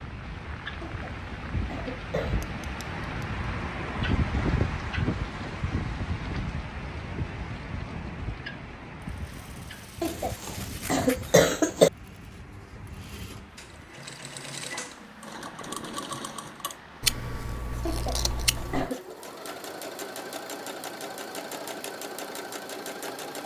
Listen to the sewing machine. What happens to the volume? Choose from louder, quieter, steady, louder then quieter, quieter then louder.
louder.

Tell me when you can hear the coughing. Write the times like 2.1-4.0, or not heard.
0.8-2.5, 10.0-11.9, 17.9-19.0.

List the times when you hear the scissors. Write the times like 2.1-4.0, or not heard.
2.4-3.5, 10.1-11.4, 17.0-18.9.